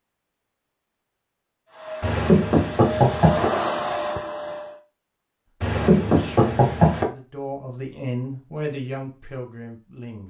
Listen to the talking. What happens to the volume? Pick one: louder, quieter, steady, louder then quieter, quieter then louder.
louder then quieter.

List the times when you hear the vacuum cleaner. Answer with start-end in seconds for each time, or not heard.
1.6-4.8.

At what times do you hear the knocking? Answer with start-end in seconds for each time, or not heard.
2.0-3.5, 5.6-7.0.